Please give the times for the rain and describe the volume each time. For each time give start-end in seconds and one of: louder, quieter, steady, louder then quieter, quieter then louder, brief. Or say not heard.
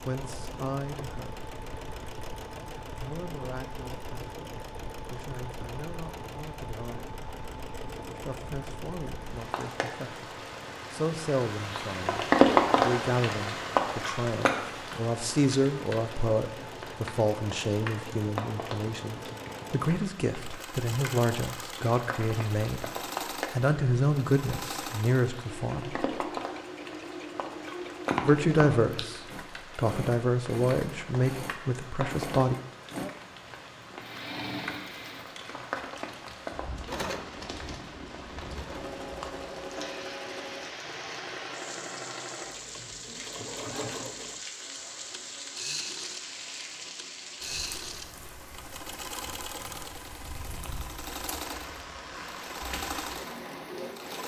0.2-54.2 louder then quieter.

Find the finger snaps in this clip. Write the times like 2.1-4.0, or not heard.
28.1-29.1.